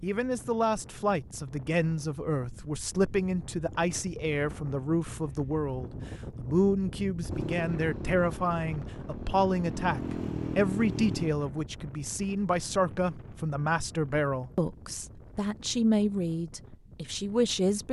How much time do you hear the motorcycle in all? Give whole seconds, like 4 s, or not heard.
4 s.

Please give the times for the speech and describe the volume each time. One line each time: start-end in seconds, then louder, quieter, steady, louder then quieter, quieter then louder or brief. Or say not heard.
0.0-17.8 steady.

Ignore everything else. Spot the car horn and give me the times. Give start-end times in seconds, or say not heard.
not heard.